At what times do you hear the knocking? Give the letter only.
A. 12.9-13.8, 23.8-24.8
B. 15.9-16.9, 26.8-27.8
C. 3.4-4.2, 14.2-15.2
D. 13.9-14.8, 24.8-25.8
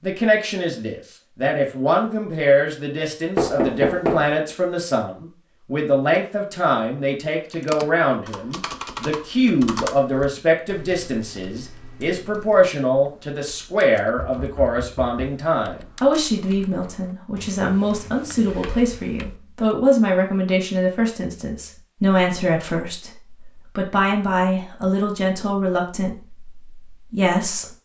C.